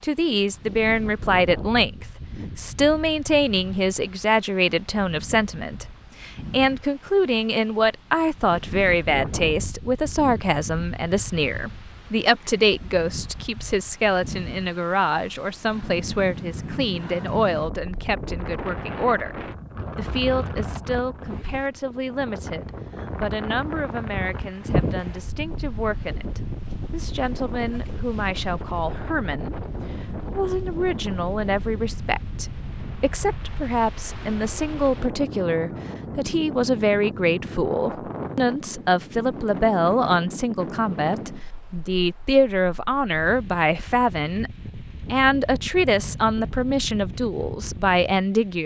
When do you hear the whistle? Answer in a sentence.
The whistle can't be heard in this clip.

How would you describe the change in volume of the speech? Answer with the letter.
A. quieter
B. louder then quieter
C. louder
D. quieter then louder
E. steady
D.